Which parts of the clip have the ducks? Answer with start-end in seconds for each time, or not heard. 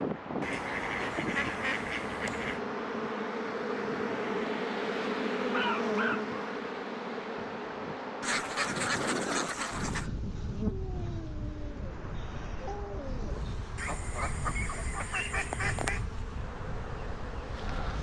0.4-2.6, 8.2-10.1, 13.8-16.0.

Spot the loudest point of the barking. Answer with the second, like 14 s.
6 s.